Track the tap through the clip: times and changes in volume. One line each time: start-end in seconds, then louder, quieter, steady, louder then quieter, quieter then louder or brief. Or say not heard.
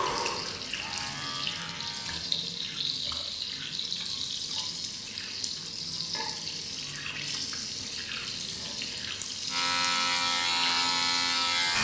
0.0-11.7 steady.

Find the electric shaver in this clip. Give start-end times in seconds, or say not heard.
0.0-2.2, 9.4-11.7.